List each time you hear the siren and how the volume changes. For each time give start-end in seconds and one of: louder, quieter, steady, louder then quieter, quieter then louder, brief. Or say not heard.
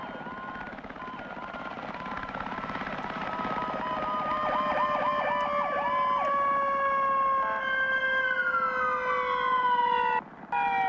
0.0-10.8 louder.